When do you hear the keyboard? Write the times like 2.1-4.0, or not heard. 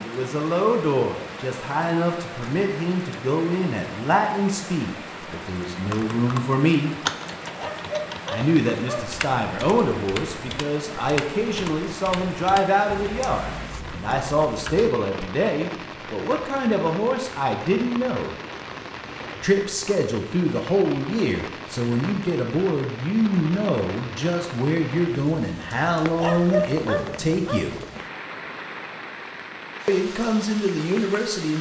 5.8-15.3.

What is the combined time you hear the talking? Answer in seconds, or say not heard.
27 s.